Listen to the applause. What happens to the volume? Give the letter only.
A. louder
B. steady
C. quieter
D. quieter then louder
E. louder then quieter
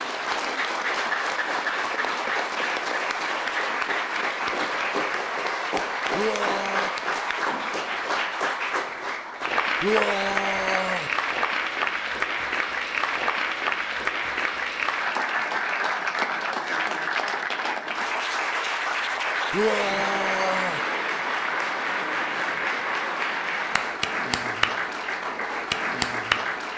B.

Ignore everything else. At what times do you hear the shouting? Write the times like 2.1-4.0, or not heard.
6.1-6.9, 9.8-11.1, 19.5-20.8.